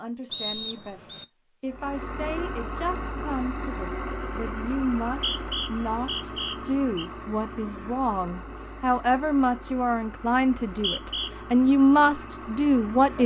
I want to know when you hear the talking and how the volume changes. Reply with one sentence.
You can hear the talking from 0.0 to 13.2 s, getting louder.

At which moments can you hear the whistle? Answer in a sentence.
You can hear the whistle from 0.3 to 1.2 s, from 5.0 to 7.0 s and from 10.4 to 11.3 s.